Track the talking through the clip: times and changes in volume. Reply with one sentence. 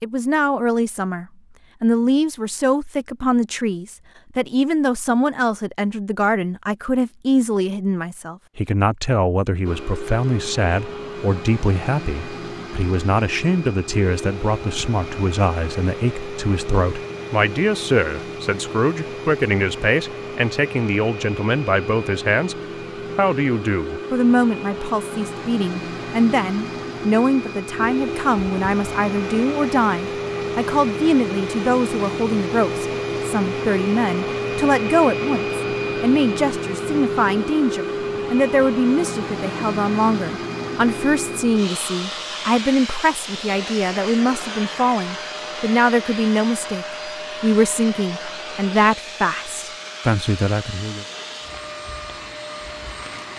The talking can be heard from 0.0 to 22.6 s, at a steady volume; and from 23.1 to 51.0 s, at a steady volume.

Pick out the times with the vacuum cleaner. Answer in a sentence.
The vacuum cleaner can be heard from 9.6 to 53.3 s.